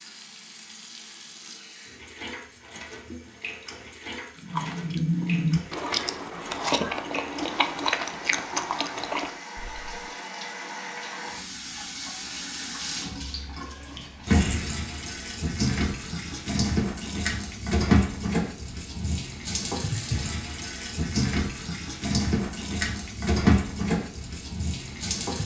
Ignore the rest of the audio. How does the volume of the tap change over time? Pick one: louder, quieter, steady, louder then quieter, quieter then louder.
louder.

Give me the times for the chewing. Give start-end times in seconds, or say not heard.
4.3-9.9.